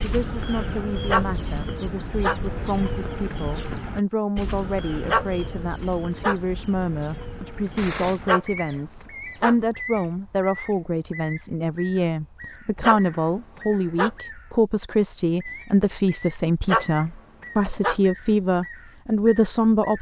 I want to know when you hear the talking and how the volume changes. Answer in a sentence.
You can hear the talking from 0.0 to 19.9 s, getting louder.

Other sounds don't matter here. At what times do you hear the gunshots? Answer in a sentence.
You can hear the gunshots from 7.8 to 8.8 s.